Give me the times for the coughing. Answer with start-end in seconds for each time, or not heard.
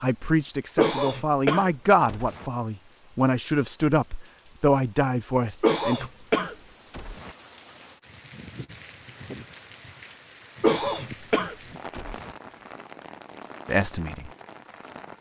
0.8-2.5, 5.6-7.3, 10.6-12.3.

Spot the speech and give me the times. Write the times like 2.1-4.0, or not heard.
0.0-6.1, 13.7-14.3.